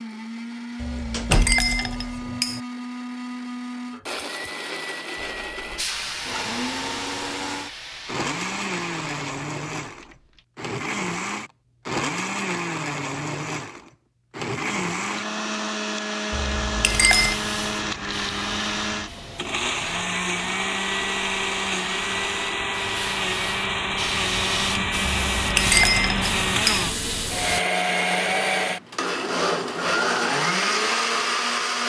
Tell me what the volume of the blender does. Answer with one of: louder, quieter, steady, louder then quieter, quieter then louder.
louder.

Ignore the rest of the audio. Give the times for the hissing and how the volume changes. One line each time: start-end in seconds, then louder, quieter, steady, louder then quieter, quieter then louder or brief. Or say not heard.
5.4-10.4 quieter
16.8-27.6 quieter then louder.